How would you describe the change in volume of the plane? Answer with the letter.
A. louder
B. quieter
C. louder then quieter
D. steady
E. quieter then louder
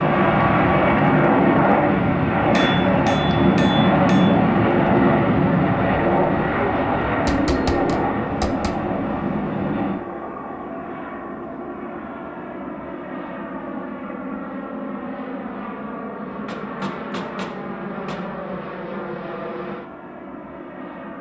B.